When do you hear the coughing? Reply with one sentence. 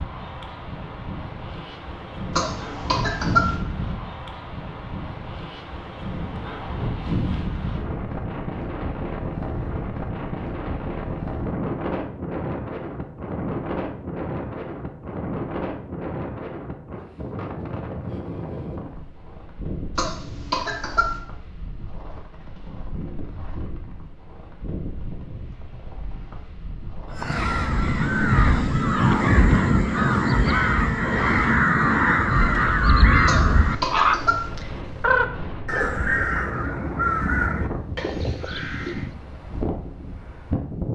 You can hear the coughing from 2.4 to 3.5 s, from 19.9 to 21.1 s and from 33.2 to 34.5 s.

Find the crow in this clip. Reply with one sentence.
The crow can be heard from 27.1 to 39.1 s.